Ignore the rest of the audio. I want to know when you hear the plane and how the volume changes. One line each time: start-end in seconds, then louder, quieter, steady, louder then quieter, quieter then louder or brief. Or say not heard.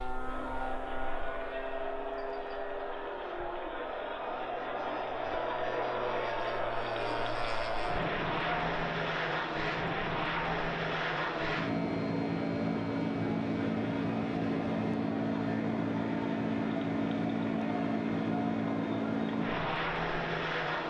0.0-20.8 louder.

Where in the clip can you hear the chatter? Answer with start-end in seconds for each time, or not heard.
0.1-20.8.